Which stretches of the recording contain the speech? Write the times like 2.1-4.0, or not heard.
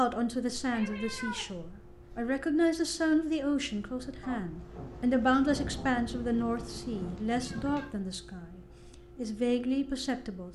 0.0-10.5.